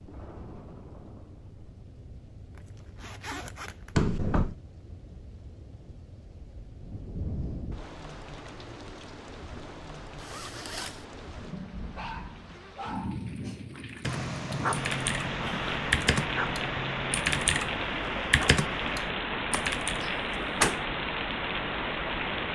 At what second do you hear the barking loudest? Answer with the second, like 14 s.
15 s.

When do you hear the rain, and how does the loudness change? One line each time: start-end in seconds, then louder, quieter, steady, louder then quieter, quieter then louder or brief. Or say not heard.
0.0-22.5 louder.